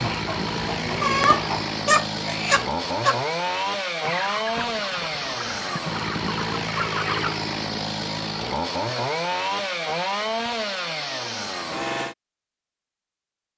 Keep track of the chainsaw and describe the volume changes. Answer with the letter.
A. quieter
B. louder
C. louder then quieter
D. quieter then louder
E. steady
E.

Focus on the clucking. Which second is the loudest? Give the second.
1 s.